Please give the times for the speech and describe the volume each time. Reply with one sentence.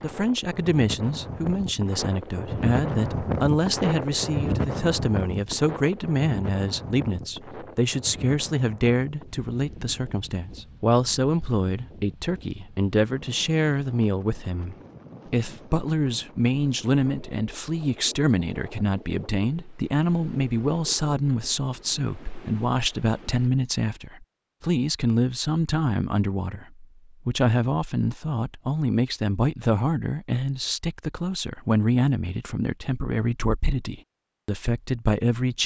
The speech can be heard from 0.0 to 35.6 s, at a steady volume.